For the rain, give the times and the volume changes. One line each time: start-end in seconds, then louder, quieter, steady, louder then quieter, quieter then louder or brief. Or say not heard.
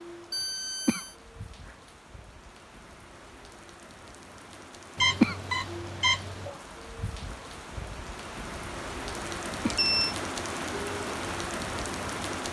0.0-12.4 louder.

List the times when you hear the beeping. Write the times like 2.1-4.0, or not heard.
0.3-1.1, 5.0-6.5, 9.2-10.2.